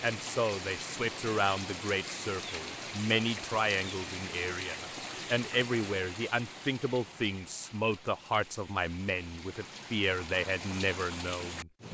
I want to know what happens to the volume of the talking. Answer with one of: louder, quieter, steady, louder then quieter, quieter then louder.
steady.